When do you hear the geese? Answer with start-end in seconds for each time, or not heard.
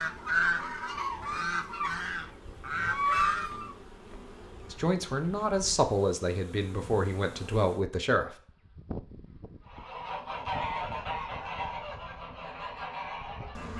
0.0-3.8, 9.7-13.7.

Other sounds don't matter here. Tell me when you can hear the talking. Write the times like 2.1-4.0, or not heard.
4.7-8.3.